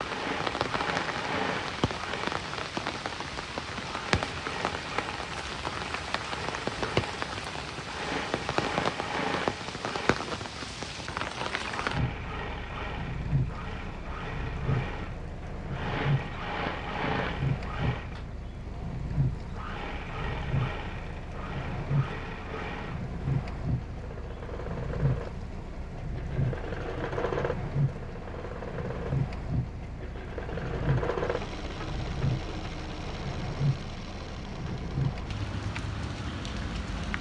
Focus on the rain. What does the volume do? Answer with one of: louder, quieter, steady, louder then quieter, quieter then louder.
steady.